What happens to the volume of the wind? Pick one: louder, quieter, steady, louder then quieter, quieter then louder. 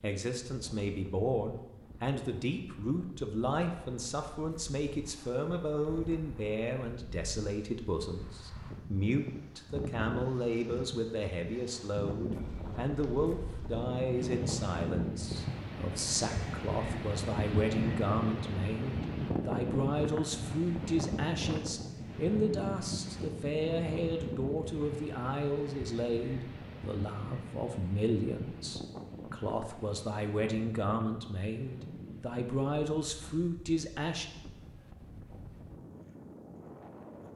louder then quieter.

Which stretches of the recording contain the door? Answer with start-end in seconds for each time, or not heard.
not heard.